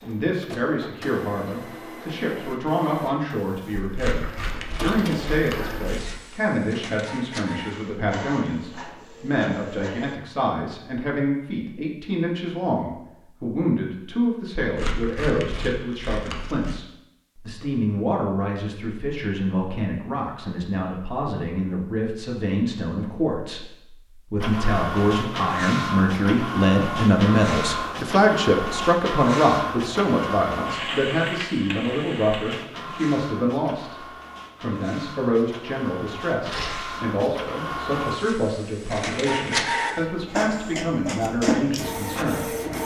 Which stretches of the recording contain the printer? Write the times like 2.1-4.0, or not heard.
0.0-10.2, 24.4-42.8.